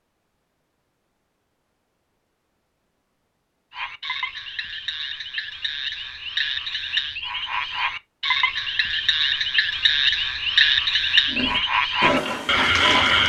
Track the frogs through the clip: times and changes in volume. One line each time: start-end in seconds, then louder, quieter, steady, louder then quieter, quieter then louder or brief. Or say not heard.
3.7-13.2 louder.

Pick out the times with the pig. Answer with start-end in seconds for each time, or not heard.
11.3-13.2.